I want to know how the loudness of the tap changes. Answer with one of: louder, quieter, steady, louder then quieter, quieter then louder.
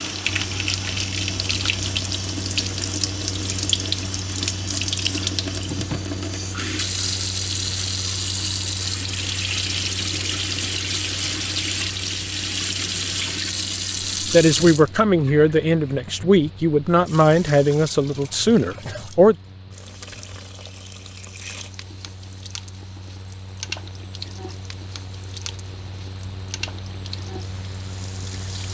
quieter.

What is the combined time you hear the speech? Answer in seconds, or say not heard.
5 s.